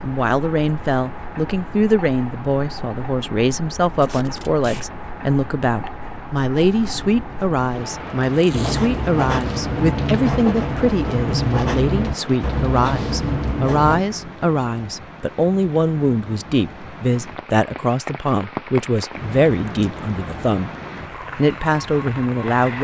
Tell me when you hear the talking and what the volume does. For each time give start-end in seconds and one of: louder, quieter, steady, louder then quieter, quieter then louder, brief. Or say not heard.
0.0-20.7 steady
21.4-22.7 brief.